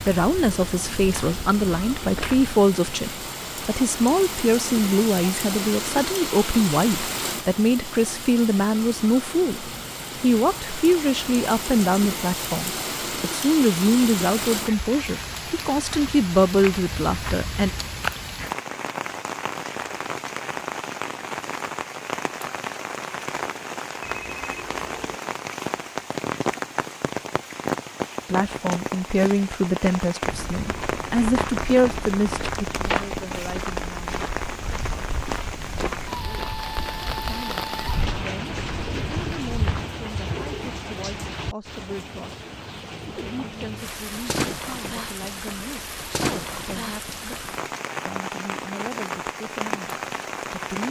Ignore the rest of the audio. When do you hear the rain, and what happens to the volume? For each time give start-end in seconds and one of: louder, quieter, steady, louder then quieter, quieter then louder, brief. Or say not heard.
0.0-50.8 steady.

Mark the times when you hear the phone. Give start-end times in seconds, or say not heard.
24.0-25.2.